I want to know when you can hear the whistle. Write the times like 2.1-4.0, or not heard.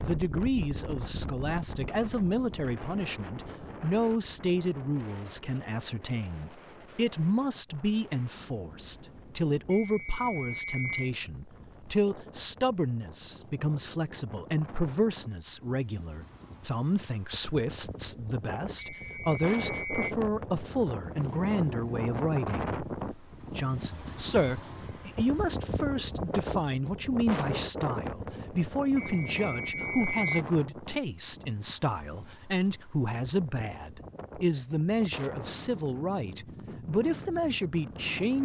9.7-11.1, 18.8-20.1, 29.0-30.3.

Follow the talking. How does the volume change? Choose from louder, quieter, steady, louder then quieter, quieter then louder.
steady.